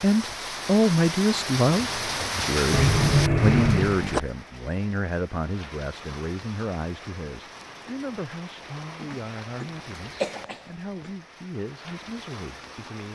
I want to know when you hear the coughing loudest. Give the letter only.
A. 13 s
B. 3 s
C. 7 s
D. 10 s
B.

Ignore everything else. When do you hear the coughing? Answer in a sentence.
The coughing can be heard from 2.7 to 4.2 s and from 9.0 to 11.1 s.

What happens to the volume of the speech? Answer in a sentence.
The loudness of the speech goes down.